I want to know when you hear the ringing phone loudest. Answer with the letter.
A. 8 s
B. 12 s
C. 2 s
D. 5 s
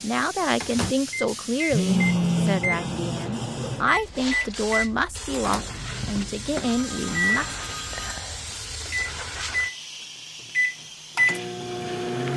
C.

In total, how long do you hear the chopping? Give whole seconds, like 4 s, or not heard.
not heard.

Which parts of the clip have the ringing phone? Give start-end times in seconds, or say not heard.
1.7-2.6, 6.5-8.6.